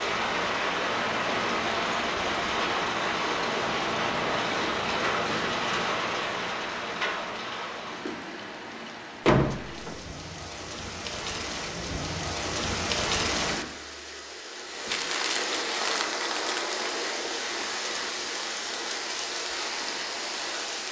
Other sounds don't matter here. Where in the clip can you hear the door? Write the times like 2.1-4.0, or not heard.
9.2-10.0.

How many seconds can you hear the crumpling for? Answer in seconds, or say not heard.
2 s.